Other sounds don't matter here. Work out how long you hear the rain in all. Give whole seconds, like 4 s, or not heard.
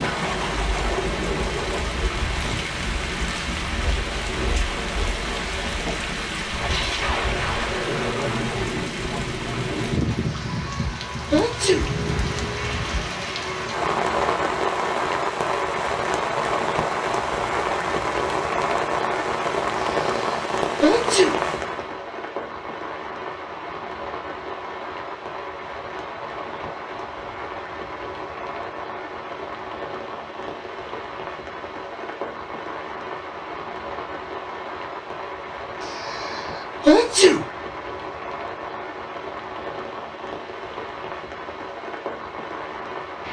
43 s.